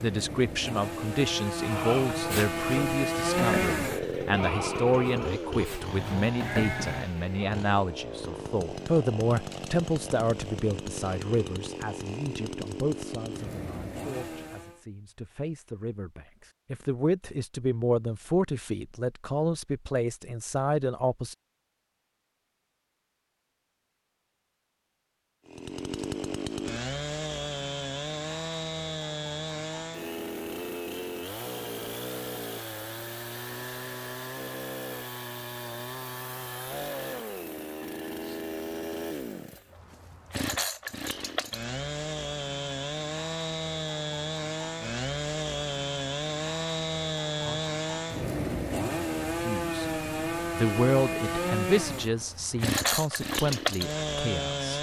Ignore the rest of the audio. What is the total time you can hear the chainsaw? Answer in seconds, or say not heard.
44 s.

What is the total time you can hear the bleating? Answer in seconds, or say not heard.
6 s.